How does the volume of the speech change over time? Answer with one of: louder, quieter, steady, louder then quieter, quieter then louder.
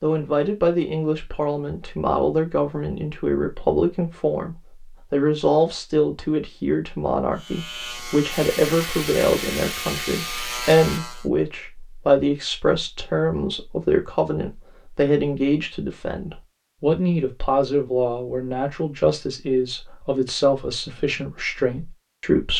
steady.